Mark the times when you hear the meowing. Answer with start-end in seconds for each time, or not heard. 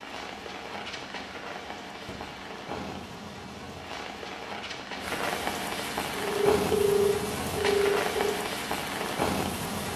not heard.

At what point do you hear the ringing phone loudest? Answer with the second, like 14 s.
7 s.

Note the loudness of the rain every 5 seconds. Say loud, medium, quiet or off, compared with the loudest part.
medium, loud.